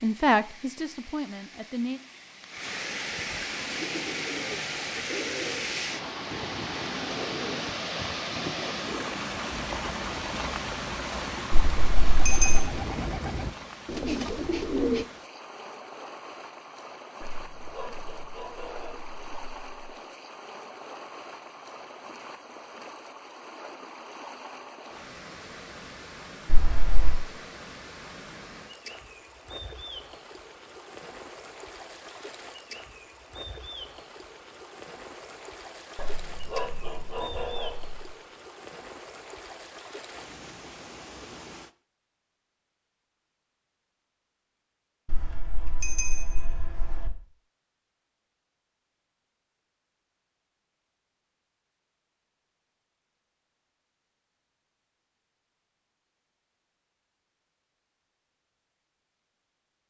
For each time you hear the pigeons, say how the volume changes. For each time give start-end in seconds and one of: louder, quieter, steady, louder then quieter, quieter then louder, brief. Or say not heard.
3.5-15.1 louder.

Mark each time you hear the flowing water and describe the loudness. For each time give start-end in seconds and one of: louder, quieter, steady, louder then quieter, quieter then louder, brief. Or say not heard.
0.0-41.7 quieter.